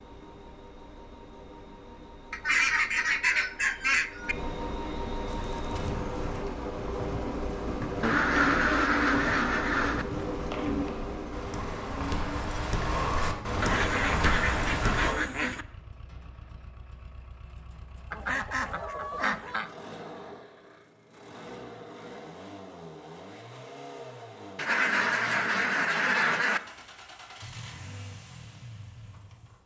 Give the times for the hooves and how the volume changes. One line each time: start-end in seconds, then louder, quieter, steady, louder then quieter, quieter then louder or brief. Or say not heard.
5.2-15.2 louder.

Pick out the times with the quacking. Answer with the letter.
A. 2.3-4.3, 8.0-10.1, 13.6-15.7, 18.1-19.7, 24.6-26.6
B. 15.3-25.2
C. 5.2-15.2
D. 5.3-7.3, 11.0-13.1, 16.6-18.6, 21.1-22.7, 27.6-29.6
A.